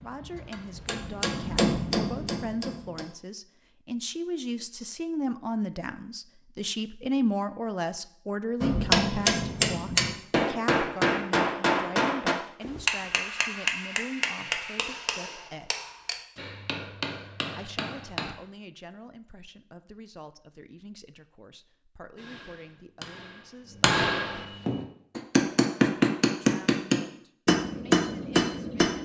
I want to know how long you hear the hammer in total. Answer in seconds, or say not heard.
20 s.